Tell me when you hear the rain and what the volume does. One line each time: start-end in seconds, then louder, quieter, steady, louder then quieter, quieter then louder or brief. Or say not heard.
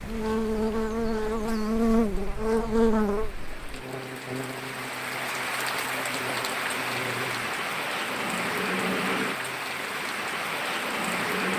0.0-11.5 louder.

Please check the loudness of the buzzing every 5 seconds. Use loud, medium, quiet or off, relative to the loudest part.
loud, quiet, off.